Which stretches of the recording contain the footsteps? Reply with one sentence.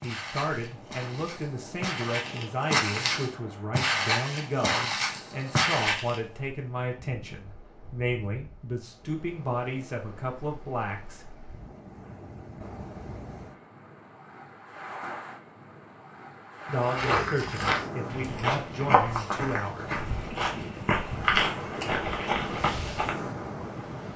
The footsteps can be heard from 0.0 to 6.2 s and from 16.8 to 23.2 s.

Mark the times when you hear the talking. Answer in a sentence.
The talking can be heard from 0.0 to 11.2 s and from 16.6 to 20.0 s.